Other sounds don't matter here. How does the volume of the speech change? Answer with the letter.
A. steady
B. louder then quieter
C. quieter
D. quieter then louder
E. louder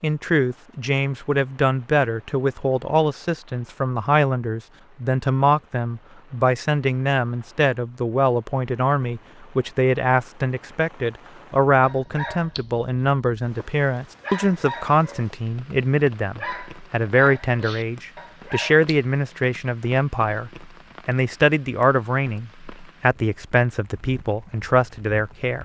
A.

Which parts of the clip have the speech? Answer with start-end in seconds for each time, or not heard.
0.0-25.6.